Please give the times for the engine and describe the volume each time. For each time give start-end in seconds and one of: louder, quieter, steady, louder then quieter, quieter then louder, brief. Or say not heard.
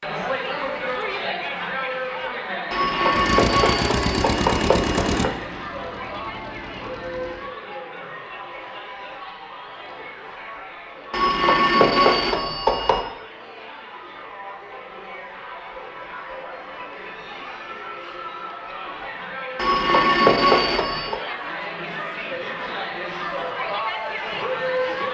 3.1-7.5 quieter.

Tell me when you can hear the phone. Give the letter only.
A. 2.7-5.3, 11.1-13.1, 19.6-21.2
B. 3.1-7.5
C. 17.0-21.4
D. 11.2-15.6
A.